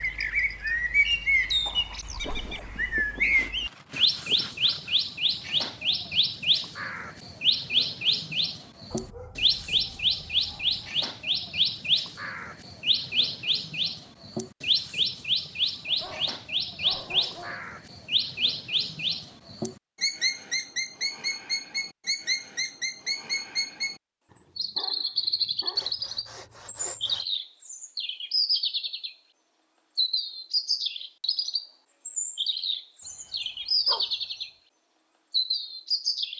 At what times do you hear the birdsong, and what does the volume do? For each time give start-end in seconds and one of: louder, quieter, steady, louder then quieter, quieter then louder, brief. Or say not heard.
0.0-36.3 steady.